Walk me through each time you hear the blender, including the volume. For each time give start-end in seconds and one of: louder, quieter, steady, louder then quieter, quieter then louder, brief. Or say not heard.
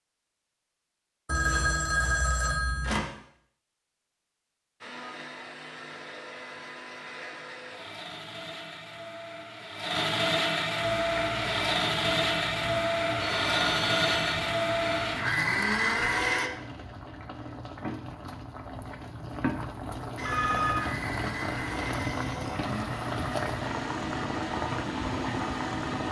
4.8-16.5 louder
20.1-26.0 steady.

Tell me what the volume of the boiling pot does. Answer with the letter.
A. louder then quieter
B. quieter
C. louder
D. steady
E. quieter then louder
C.